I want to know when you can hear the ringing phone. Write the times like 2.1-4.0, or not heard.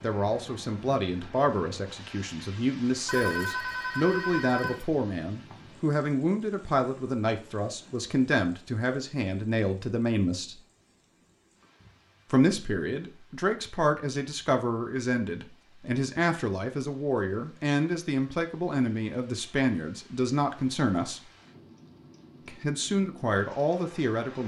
3.0-4.8.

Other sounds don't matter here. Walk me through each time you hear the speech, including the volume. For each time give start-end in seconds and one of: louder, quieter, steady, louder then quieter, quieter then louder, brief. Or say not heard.
0.0-10.6 steady
12.3-21.2 steady
22.4-24.4 brief.